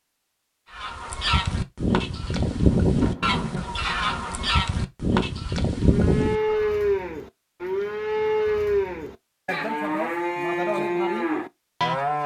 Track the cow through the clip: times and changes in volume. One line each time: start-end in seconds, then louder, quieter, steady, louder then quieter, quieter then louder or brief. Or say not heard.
5.8-12.2 steady.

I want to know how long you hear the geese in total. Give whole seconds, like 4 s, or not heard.
6 s.